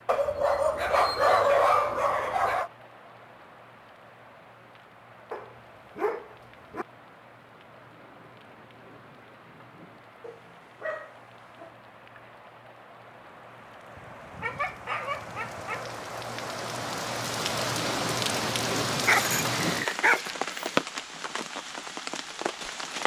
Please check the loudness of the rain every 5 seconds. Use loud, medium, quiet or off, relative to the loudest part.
quiet, quiet, quiet, loud, loud.